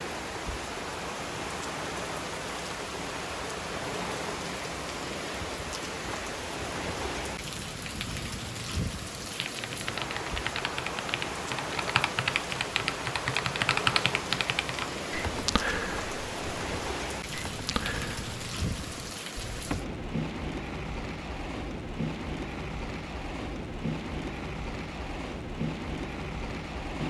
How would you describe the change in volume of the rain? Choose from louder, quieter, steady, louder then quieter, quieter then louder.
steady.